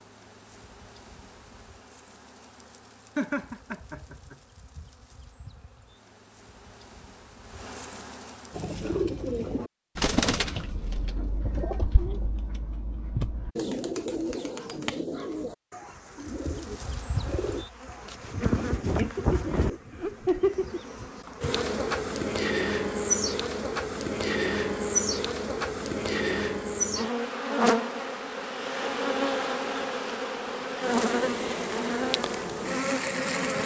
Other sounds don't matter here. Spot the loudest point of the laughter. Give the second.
20 s.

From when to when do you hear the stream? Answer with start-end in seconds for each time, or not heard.
not heard.